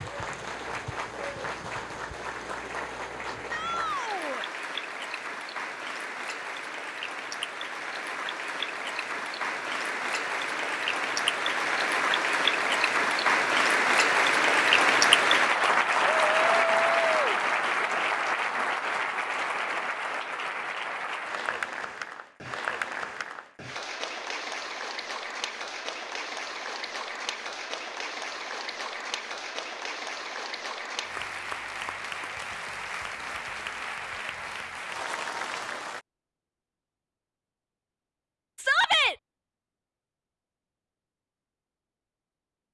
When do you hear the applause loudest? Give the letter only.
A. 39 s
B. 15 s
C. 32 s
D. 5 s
B.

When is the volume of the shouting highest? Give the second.
39 s.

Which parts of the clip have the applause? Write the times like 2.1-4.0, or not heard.
0.0-36.0.